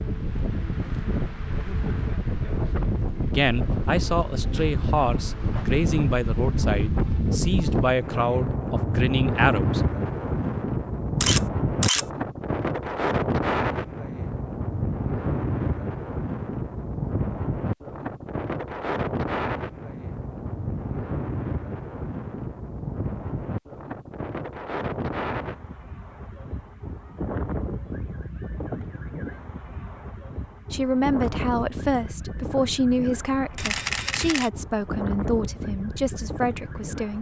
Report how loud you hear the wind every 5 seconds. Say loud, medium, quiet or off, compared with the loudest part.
loud, loud, loud, loud, medium, medium, medium, medium.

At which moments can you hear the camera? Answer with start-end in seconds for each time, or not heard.
11.2-12.1, 33.5-34.5.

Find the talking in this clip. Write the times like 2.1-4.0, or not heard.
3.3-9.8, 30.7-37.1.